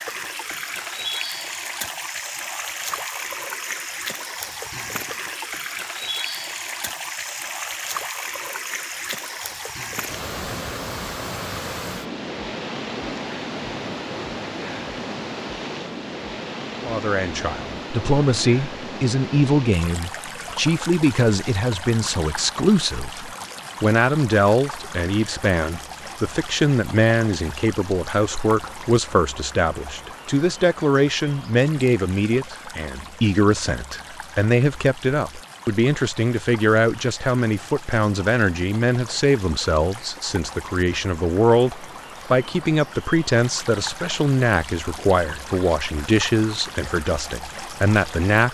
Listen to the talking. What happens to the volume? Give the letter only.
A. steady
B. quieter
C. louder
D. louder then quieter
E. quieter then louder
A.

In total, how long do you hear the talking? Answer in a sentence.
The talking can be heard for 32 seconds in total.